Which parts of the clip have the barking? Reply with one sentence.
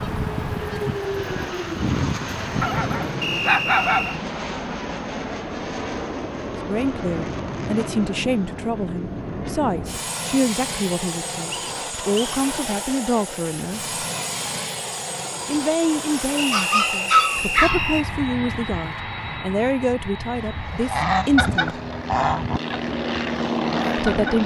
The barking can be heard from 2.6 to 4.2 s and from 16.5 to 17.9 s.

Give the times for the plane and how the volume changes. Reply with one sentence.
The plane can be heard from 0.0 to 24.4 s, at a steady volume.